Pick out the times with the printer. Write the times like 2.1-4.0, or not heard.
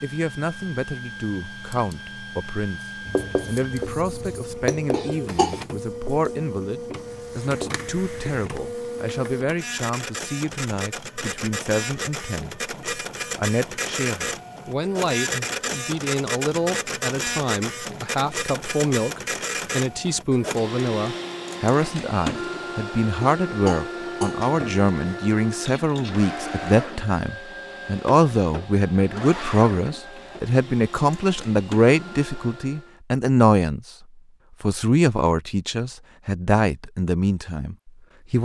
0.0-33.0.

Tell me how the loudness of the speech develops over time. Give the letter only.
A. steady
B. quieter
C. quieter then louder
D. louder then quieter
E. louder
E.